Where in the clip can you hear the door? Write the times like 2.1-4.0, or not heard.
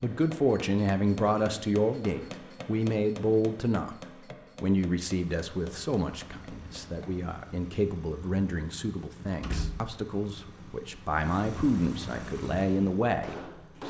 9.4-9.8.